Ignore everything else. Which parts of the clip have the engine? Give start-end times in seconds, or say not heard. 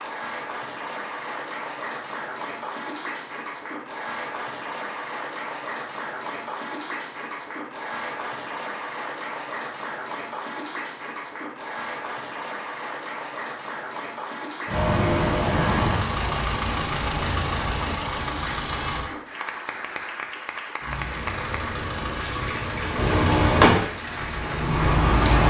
14.7-19.1, 20.8-25.4.